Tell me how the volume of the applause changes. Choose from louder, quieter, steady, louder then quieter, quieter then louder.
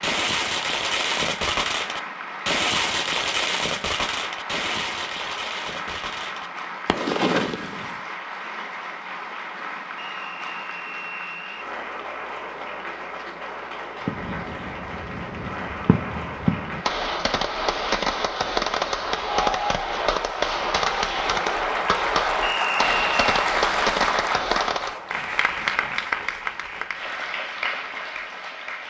louder.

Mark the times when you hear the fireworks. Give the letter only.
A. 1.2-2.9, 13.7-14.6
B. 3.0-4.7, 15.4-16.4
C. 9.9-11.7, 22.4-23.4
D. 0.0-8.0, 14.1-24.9
D.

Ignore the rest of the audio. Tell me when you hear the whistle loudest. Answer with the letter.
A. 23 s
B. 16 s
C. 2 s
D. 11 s
A.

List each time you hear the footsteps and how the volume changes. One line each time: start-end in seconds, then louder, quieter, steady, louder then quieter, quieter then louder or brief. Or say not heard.
not heard.